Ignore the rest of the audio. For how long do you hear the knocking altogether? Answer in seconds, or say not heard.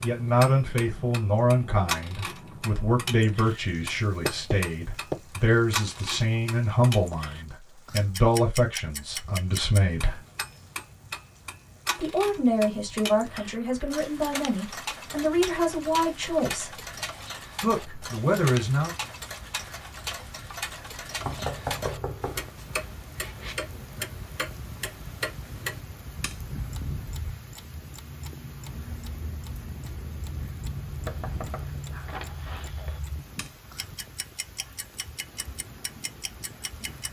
4 s.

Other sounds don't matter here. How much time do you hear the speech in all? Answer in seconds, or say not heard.
16 s.